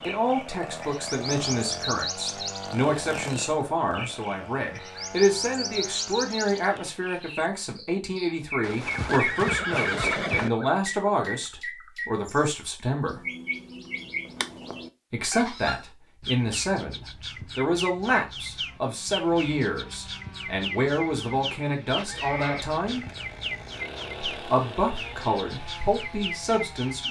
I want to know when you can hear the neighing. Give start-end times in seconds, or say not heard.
8.6-10.5, 21.9-22.7.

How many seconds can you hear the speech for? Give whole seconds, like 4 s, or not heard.
24 s.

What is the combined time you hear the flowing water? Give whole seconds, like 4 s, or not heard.
not heard.